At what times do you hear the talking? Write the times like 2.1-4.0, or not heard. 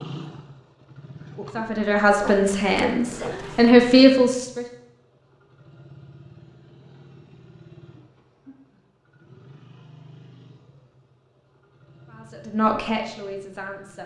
1.6-4.7, 12.1-14.0.